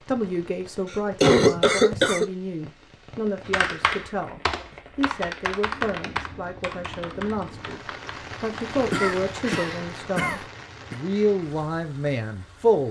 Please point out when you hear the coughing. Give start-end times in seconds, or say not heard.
0.9-2.3, 8.9-11.0.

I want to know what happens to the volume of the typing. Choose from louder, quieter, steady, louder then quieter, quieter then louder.
quieter.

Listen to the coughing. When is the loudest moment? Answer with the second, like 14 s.
1 s.